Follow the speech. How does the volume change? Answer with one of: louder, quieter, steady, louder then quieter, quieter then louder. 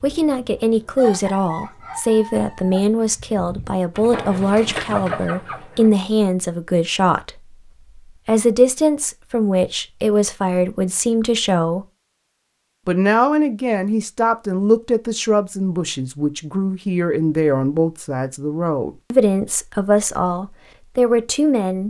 steady.